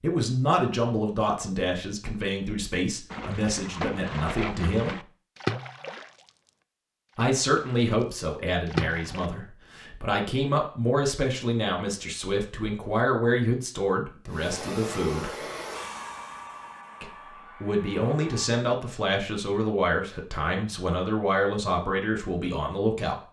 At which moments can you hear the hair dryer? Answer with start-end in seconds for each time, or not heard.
14.2-18.6.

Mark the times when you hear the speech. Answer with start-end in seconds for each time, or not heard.
0.0-5.0, 7.2-15.4, 17.0-23.2.